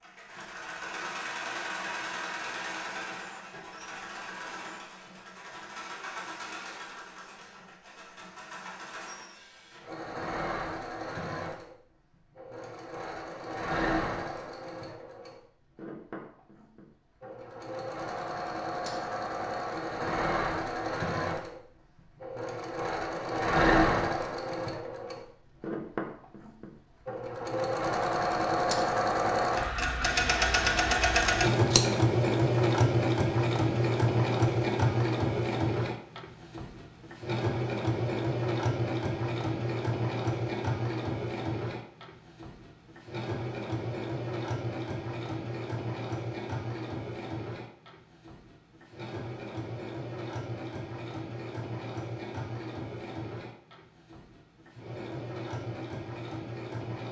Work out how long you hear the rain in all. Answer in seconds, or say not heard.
not heard.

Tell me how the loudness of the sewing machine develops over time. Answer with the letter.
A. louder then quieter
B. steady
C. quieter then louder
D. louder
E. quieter
A.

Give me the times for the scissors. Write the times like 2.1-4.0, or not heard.
31.2-31.9.